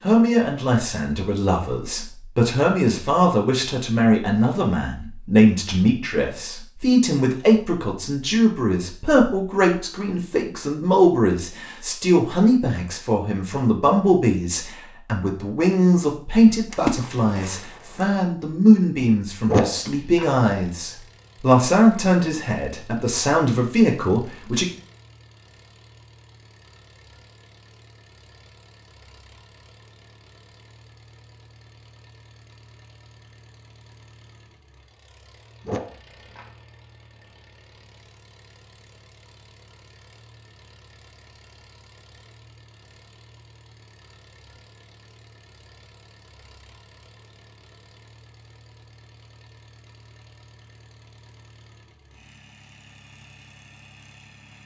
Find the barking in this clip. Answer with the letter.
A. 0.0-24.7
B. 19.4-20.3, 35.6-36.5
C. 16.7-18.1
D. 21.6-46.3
B.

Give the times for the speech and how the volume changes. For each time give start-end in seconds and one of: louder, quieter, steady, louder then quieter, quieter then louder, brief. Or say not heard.
0.0-24.7 steady.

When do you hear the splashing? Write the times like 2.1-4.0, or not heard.
16.7-18.1.